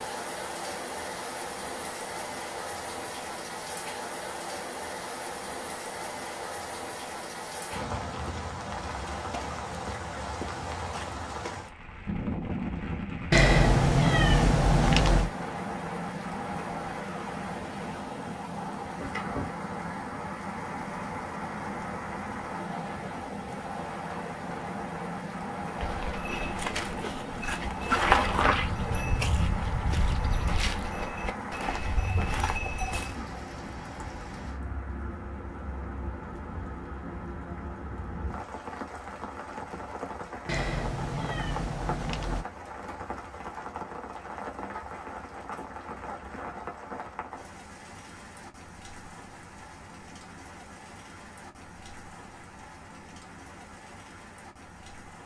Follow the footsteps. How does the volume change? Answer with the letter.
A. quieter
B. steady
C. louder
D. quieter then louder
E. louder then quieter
E.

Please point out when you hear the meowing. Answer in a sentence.
The meowing can be heard from 13.3 to 15.3 s and from 40.5 to 42.5 s.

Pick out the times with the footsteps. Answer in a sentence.
You can hear the footsteps from 25.8 to 33.1 s.